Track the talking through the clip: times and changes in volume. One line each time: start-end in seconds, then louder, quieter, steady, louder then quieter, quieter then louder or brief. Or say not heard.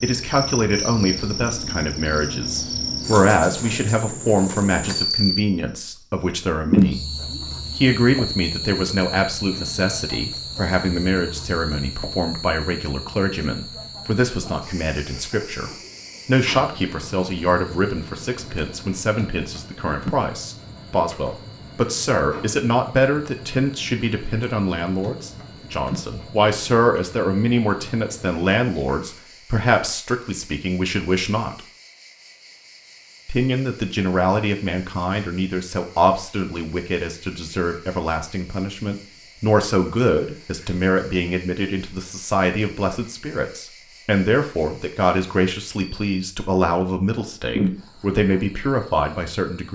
0.0-31.6 steady
33.2-49.7 steady.